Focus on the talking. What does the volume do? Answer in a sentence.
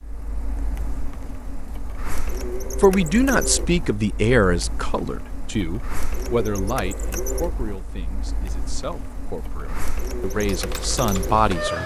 The volume of the talking goes down, then up.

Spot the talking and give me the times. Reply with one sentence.
You can hear the talking from 2.8 to 11.8 s.